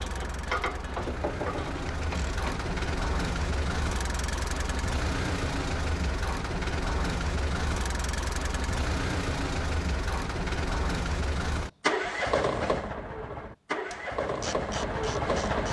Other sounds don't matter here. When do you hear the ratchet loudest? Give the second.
1 s.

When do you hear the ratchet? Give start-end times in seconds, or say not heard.
0.0-2.5, 13.8-15.6.